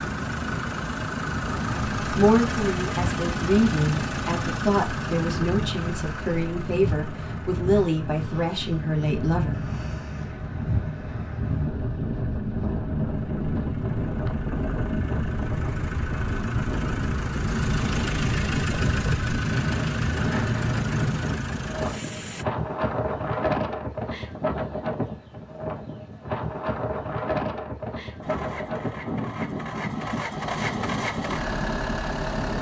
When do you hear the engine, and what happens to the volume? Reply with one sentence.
The engine can be heard from 0.0 to 22.4 s, getting quieter then louder; and from 28.2 to 32.5 s, getting louder.